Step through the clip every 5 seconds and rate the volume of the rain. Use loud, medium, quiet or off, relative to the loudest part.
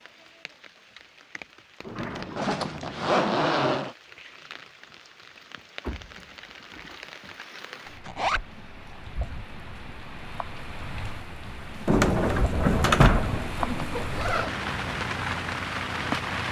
quiet, quiet, medium, loud.